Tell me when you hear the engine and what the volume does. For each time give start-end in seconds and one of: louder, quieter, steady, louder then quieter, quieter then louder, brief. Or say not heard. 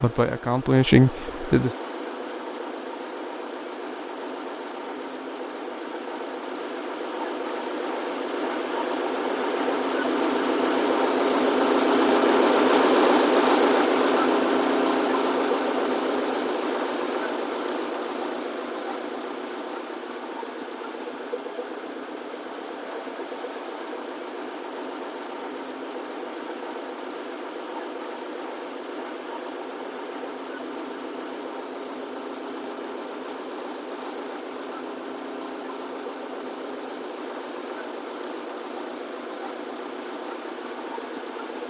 0.0-41.6 louder then quieter.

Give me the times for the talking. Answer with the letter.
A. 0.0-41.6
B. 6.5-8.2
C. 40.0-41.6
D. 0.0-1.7
D.